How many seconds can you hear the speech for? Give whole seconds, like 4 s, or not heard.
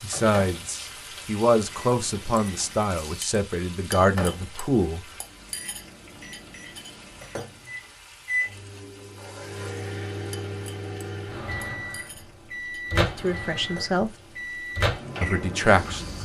7 s.